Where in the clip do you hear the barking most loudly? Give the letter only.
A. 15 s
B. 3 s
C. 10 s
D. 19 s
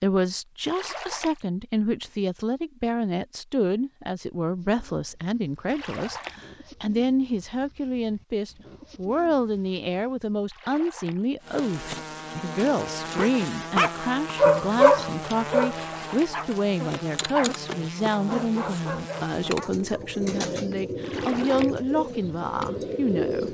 A.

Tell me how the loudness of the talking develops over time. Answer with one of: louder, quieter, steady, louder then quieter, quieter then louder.
steady.